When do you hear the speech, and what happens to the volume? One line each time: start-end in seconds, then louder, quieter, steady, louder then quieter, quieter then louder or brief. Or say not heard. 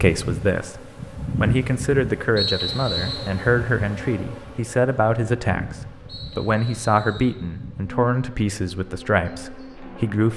0.0-10.3 steady.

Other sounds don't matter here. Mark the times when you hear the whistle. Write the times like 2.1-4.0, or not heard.
2.4-3.2, 6.0-7.4.